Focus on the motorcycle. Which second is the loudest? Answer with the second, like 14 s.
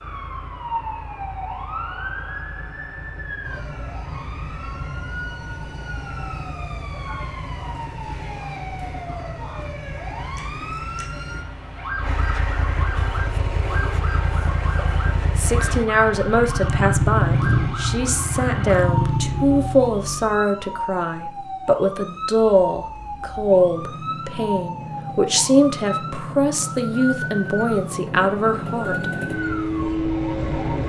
17 s.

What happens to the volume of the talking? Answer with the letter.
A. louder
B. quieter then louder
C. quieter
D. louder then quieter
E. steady
E.